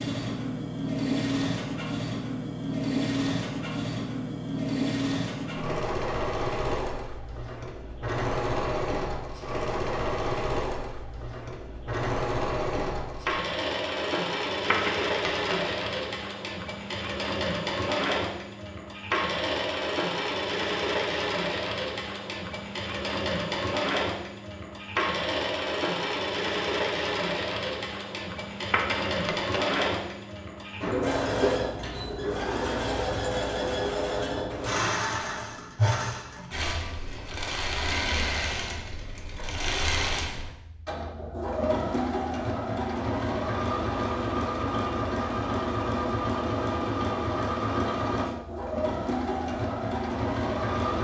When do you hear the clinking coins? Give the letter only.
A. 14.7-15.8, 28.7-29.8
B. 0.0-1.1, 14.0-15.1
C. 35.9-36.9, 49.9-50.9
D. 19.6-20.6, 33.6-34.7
A.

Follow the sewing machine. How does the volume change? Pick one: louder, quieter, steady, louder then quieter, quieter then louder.
steady.